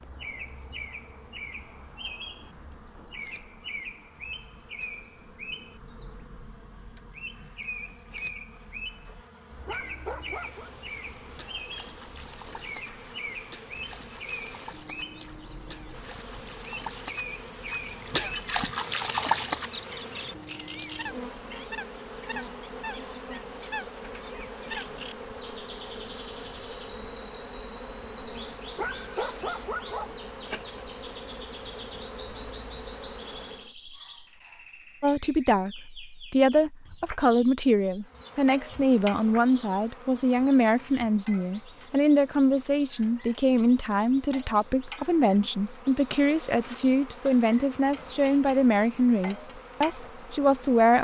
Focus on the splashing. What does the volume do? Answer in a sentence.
The loudness of the splashing goes up.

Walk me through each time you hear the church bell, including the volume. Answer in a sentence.
You can't hear the church bell here.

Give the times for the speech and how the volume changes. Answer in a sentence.
You can hear the speech from 35.0 to 50.9 s, at a steady volume.